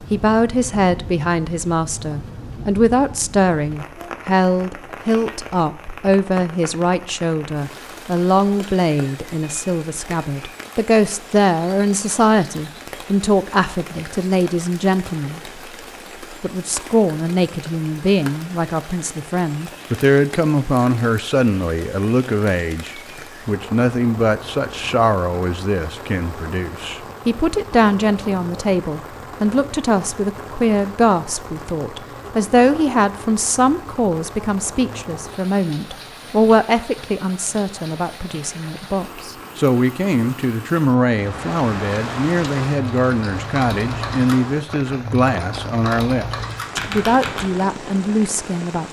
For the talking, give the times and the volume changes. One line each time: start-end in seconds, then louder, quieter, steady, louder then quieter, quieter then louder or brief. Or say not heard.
0.0-15.6 steady
16.4-48.8 steady.